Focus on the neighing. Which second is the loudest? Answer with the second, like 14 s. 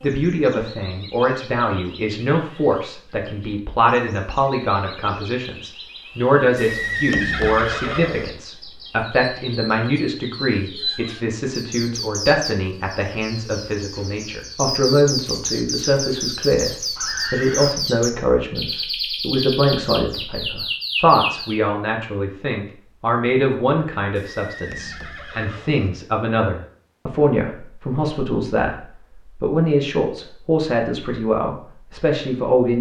7 s.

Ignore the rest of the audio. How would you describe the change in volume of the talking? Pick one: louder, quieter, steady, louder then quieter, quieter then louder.
steady.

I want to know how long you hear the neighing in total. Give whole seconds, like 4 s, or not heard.
4 s.